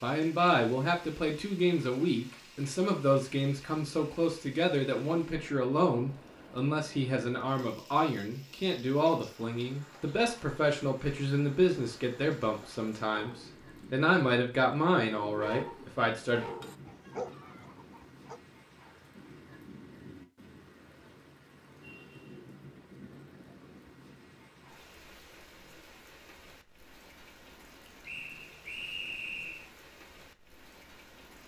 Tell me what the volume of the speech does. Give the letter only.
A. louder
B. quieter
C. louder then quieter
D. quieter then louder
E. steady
E.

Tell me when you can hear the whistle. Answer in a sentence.
The whistle can be heard from 28.1 to 29.7 s.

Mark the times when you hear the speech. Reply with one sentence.
The speech can be heard from 0.0 to 16.4 s.